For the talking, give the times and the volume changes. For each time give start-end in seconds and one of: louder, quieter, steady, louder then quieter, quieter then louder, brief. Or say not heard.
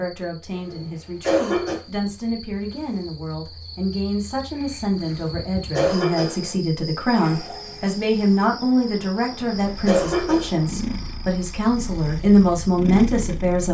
0.0-13.6 louder.